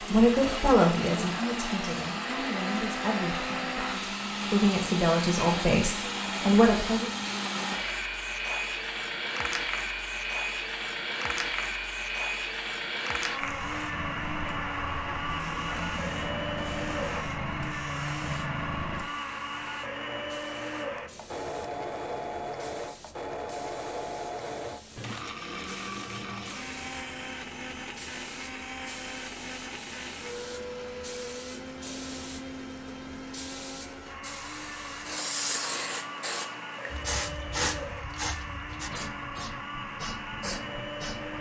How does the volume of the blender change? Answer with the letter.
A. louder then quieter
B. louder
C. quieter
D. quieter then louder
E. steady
C.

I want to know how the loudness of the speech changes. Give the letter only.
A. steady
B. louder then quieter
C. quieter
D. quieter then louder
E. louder
D.